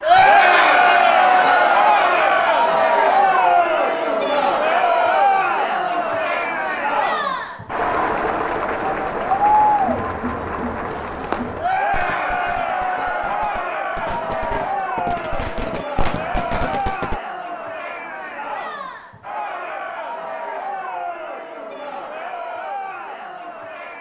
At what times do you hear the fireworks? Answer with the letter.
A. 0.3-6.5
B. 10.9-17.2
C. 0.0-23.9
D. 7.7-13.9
B.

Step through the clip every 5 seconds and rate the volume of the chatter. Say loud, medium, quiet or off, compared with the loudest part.
loud, medium, medium, quiet, quiet.